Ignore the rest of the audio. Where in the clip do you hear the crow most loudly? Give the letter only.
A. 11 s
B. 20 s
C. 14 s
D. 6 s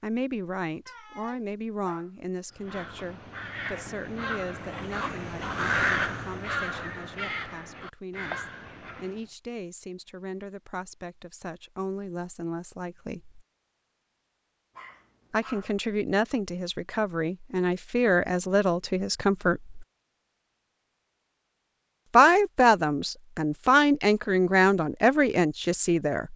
D.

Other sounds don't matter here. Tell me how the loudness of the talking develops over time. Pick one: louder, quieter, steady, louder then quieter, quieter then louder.
quieter then louder.